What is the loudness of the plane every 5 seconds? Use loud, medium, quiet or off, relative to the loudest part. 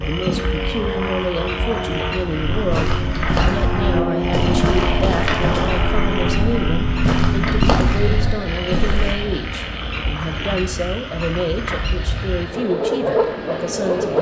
loud, loud, medium.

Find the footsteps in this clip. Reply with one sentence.
You can hear the footsteps from 2.5 to 9.2 s.